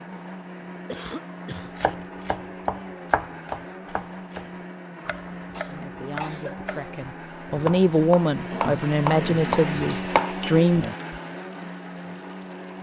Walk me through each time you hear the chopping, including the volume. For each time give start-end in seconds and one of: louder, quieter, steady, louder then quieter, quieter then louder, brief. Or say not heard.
1.8-11.2 quieter then louder.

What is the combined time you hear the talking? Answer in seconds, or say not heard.
5 s.